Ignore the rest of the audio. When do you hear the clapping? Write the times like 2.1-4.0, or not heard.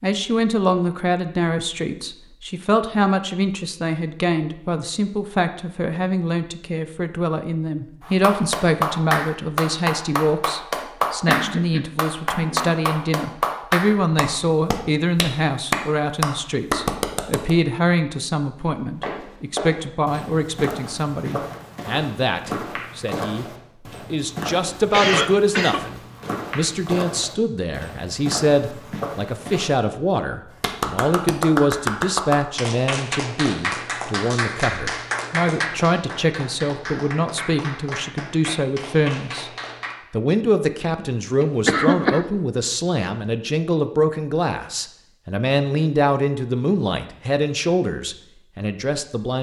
8.1-17.5, 30.6-40.0.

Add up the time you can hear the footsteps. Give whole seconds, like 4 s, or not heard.
11 s.